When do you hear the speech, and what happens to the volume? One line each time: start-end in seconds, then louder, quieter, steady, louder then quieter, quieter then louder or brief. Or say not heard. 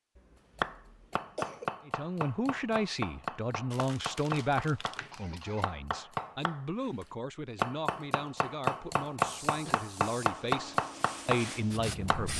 1.9-12.3 quieter then louder.